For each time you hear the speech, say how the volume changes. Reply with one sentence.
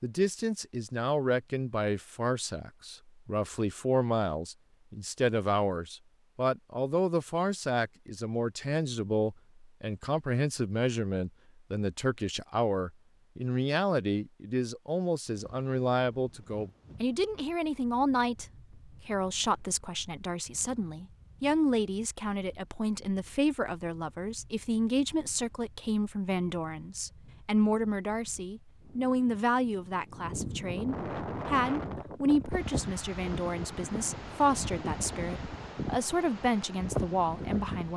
You can hear the speech from 0.0 to 18.4 s, at a steady volume; and from 19.1 to 37.9 s, at a steady volume.